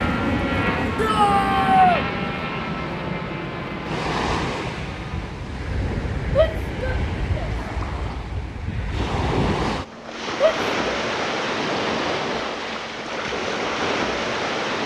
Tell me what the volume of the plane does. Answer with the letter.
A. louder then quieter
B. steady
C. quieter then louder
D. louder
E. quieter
E.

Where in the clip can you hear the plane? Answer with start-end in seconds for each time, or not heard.
0.0-5.5.